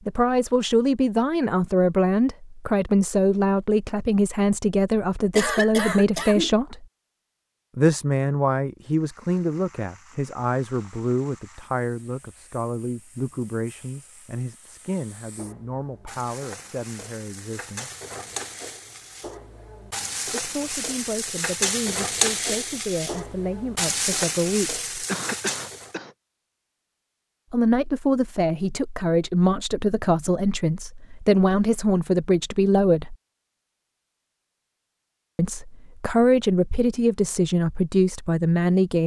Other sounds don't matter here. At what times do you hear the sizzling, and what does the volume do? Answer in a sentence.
The sizzling can be heard from 8.8 to 25.9 s, getting louder.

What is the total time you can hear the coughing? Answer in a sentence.
You can hear the coughing for 2 seconds altogether.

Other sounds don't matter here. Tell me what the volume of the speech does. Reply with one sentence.
The volume of the speech goes down, then up.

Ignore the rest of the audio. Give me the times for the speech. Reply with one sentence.
You can hear the speech from 0.1 to 6.8 s, from 7.8 to 17.9 s, from 20.2 to 24.9 s, from 27.5 to 33.1 s and from 35.4 to 39.0 s.